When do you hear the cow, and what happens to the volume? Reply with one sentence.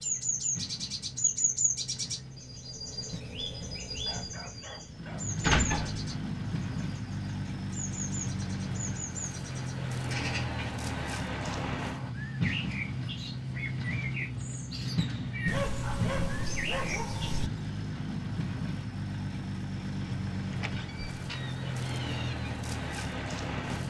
The cow can't be heard in this clip.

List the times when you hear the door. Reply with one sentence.
You can hear the door from 5.4 to 6.0 s and from 20.5 to 22.4 s.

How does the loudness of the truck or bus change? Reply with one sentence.
The volume of the truck or bus goes up.